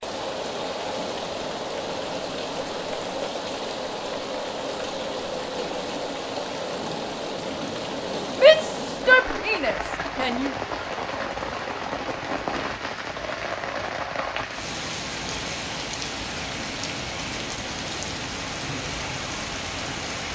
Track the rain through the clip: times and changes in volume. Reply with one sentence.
The rain can be heard from 0.0 to 20.3 s, at a steady volume.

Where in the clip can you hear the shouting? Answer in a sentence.
You can hear the shouting from 8.3 to 10.6 s.